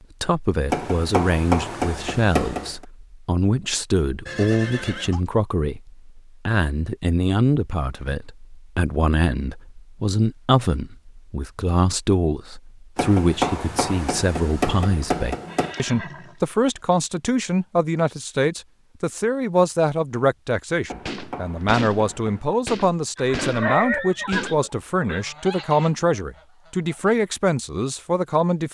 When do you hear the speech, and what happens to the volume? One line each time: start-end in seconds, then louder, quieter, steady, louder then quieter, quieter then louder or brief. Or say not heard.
0.2-28.6 steady.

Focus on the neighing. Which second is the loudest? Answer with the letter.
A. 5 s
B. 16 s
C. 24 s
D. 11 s
C.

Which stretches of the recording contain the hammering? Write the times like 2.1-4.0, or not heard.
0.7-2.9, 12.9-15.8, 20.9-22.4.